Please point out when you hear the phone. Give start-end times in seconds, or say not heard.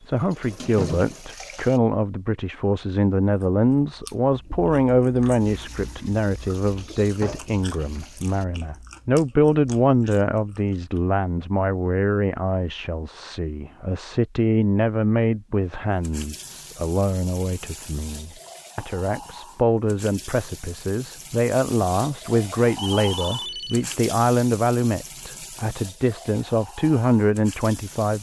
22.8-23.9.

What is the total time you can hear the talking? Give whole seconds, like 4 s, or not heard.
28 s.